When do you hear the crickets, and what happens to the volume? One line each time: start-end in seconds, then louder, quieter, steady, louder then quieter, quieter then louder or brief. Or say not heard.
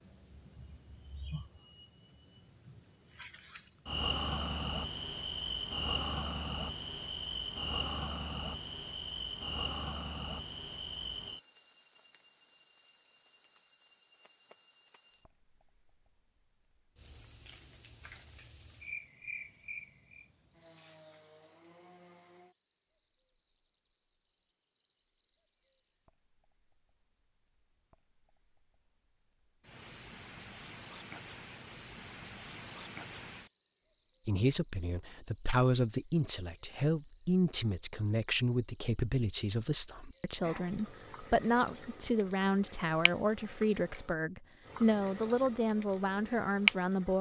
0.0-47.1 quieter then louder.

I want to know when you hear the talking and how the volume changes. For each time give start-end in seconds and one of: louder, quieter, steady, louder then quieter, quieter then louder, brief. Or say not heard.
34.2-47.1 steady.